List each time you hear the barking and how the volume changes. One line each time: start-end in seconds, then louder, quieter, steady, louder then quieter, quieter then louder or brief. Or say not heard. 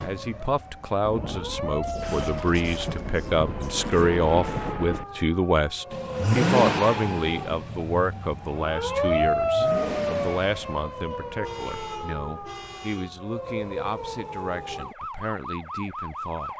not heard.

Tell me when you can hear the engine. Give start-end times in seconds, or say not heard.
5.9-10.8.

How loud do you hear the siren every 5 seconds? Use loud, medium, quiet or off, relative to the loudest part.
medium, loud, medium, medium.